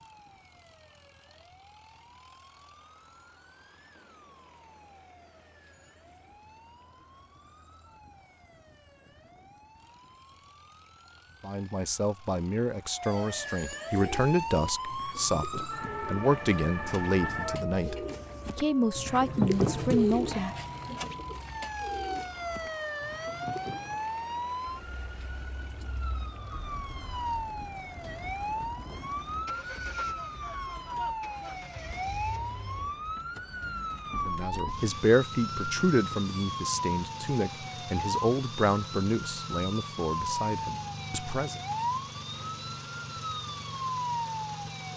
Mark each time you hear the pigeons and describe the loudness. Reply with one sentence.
The pigeons can be heard from 13.9 to 24.0 s, getting louder then quieter.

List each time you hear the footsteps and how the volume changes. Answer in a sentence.
You can't hear the footsteps here.